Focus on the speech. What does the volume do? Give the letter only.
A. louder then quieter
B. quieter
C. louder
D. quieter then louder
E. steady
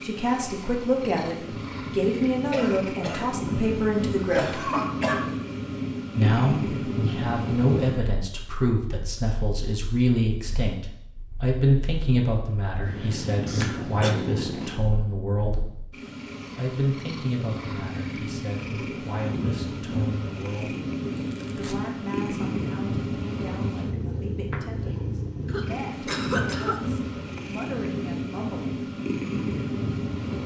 B.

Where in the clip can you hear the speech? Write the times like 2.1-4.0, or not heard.
0.0-4.7, 6.2-15.6, 16.6-20.8, 21.6-28.8.